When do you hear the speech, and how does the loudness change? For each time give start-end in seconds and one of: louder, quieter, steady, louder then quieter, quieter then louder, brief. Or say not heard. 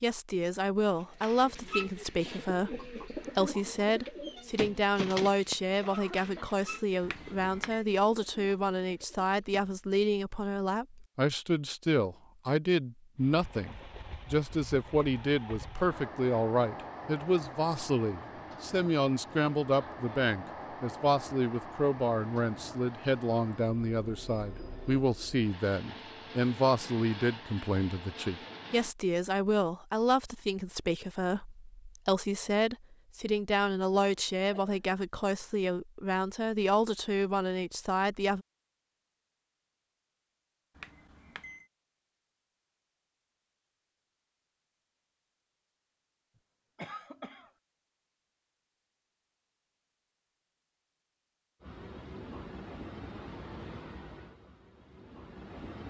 0.0-38.5 steady.